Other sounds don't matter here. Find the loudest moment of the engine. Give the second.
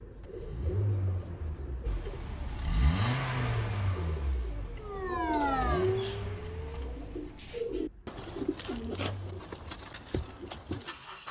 3 s.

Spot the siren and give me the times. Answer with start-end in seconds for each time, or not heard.
4.8-7.0.